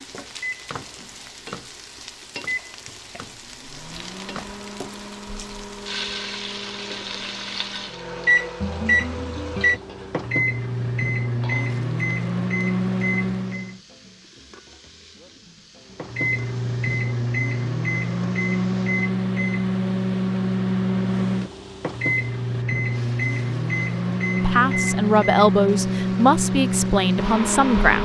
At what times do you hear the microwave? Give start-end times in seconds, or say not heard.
0.0-13.8, 15.9-28.0.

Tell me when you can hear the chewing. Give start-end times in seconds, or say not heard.
not heard.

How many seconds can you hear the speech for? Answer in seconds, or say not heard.
4 s.